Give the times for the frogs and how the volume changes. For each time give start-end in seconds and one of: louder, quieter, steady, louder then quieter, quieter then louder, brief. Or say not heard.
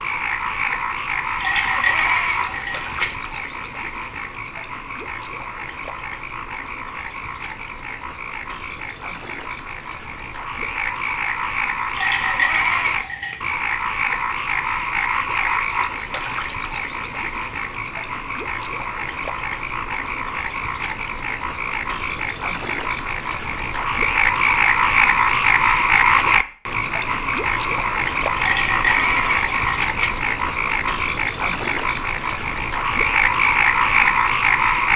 0.0-34.9 louder.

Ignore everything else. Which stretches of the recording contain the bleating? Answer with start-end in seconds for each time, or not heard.
1.4-3.1, 11.9-13.5, 28.4-30.1.